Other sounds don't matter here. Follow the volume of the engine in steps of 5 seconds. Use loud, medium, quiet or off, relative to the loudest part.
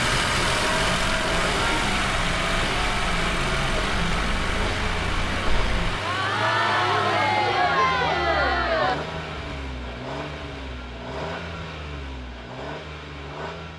loud, medium, medium.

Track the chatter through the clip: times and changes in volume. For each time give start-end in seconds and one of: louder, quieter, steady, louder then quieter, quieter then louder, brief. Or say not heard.
0.2-8.9 louder.